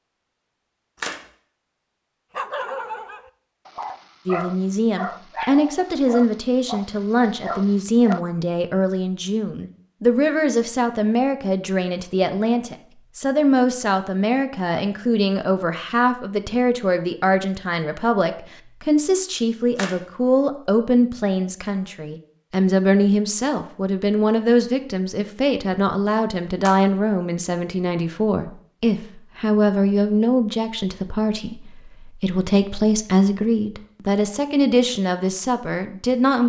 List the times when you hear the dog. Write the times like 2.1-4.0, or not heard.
2.4-8.2.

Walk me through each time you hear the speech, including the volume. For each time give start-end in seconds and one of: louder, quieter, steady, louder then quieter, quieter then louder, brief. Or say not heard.
4.2-36.4 steady.